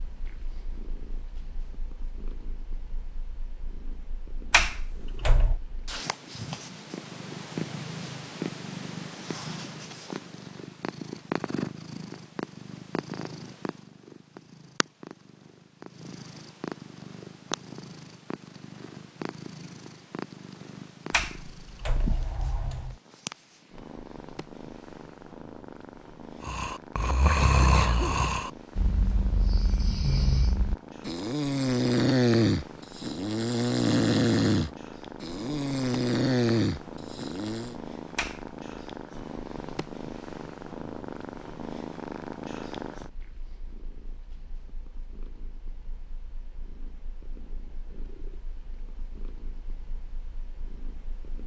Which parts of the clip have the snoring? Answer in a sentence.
The snoring can be heard from 26.4 to 37.8 s.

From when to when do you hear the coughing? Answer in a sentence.
You can hear the coughing from 27.4 to 28.1 s.